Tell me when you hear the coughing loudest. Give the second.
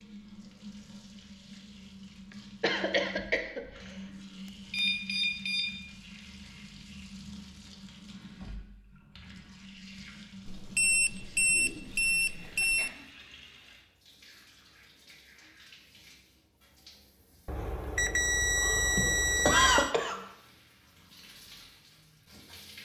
20 s.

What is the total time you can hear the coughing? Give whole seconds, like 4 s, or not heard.
4 s.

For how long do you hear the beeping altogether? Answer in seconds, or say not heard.
6 s.